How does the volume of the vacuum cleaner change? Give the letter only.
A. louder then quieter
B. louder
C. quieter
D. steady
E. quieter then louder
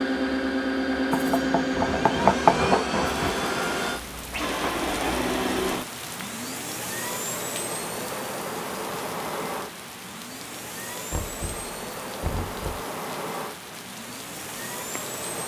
C.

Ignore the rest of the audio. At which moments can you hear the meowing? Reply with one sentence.
You can't hear the meowing here.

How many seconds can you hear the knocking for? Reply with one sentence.
You can hear the knocking for 3 seconds altogether.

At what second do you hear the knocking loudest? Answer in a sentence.
The loudest moment of the knocking is at 2 seconds.